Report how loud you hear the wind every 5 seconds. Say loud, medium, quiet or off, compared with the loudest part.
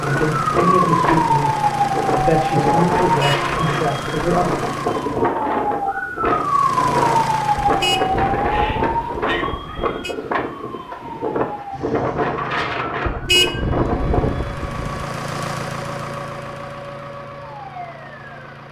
loud, loud, loud, off.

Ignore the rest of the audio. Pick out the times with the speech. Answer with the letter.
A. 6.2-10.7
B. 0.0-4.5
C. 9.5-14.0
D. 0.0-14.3
B.